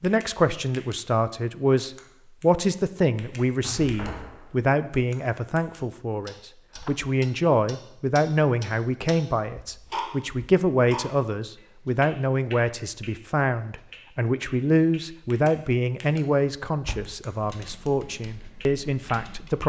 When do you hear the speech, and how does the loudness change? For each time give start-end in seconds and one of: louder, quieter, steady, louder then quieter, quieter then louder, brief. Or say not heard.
0.0-19.6 steady.